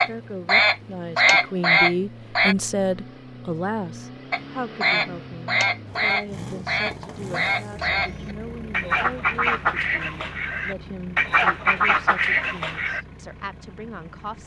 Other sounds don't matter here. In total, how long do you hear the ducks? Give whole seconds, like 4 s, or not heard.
11 s.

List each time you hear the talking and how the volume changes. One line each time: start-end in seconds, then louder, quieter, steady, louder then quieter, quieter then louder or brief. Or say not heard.
0.1-14.4 quieter.